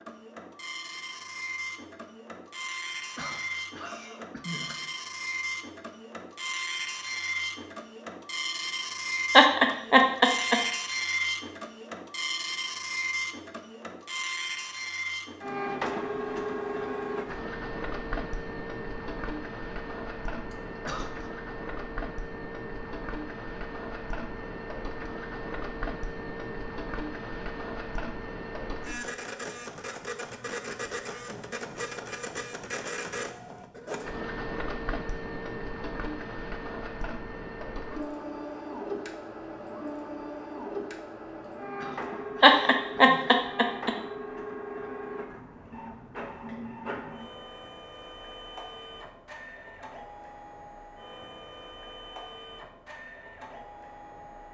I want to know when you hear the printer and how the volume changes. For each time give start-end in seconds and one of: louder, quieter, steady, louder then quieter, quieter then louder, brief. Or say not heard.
0.0-54.4 quieter.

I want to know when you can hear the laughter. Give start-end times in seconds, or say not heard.
9.3-10.6, 42.4-43.9.